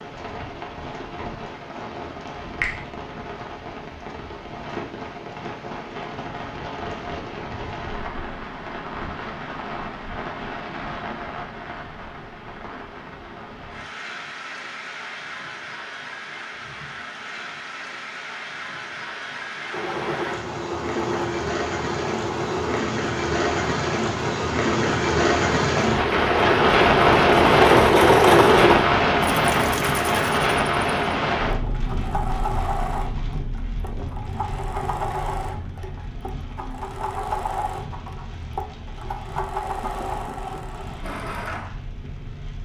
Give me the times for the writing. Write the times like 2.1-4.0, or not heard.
not heard.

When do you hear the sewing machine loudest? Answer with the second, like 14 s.
28 s.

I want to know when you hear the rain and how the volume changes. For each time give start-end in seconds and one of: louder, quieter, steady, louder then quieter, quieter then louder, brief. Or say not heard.
0.0-42.5 louder then quieter.